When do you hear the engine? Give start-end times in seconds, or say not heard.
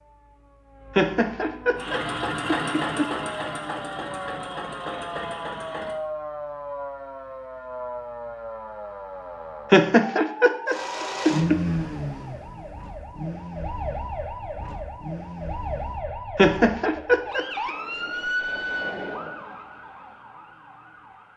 1.8-6.0, 10.7-16.1.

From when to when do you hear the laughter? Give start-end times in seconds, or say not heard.
0.9-3.1, 9.7-11.6, 16.4-17.7.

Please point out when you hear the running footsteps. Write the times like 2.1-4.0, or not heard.
not heard.